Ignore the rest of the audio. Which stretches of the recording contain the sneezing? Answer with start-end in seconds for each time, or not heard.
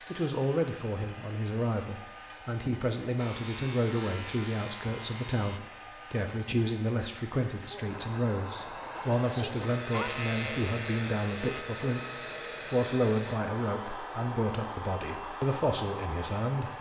8.9-10.6.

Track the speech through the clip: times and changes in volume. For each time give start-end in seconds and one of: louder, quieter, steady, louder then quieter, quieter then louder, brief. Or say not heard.
0.1-16.7 steady.